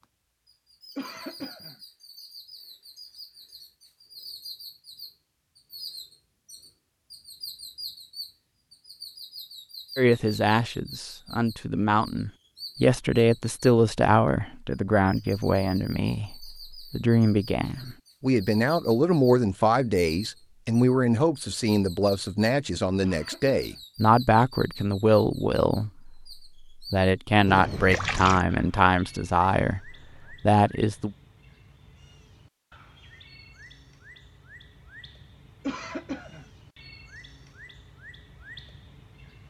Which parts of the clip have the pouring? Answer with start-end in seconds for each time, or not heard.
27.4-28.4.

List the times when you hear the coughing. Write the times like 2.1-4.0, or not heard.
0.9-1.8, 23.0-23.8, 35.6-36.5.